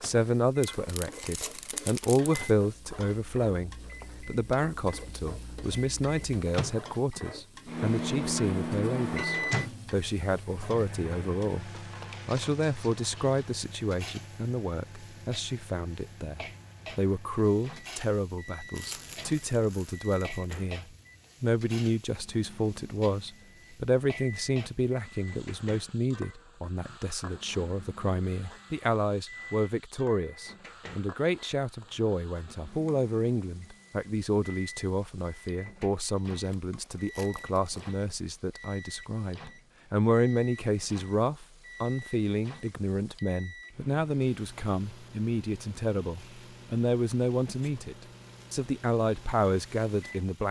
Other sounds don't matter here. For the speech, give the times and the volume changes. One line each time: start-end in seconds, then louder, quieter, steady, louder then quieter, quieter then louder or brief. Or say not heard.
0.0-50.4 steady.